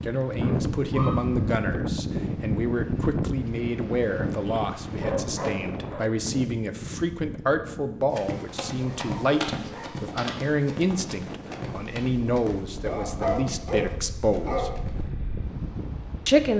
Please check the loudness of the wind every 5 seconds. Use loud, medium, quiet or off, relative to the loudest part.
loud, medium, medium, medium.